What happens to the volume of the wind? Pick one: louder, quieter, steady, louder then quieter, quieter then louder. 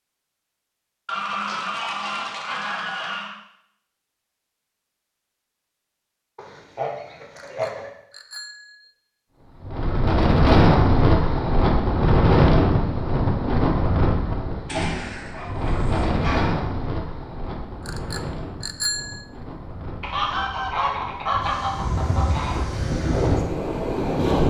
quieter then louder.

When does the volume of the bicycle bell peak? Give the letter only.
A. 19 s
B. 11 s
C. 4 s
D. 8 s
A.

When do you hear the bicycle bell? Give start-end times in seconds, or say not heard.
7.3-8.9, 17.9-19.2.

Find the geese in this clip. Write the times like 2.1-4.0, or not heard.
1.1-3.4, 6.3-7.9, 14.7-16.6, 20.0-22.6.